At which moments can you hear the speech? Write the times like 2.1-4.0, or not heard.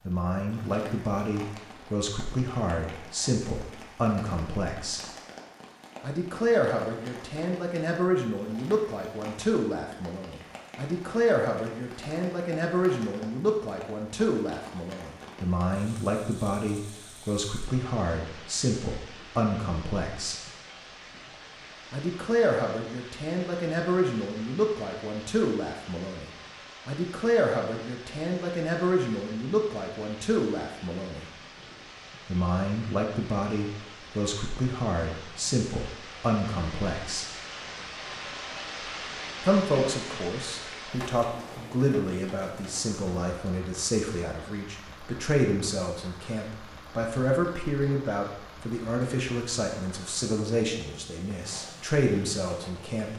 0.1-5.0, 6.0-20.4, 21.9-31.2, 32.2-37.2, 39.4-53.1.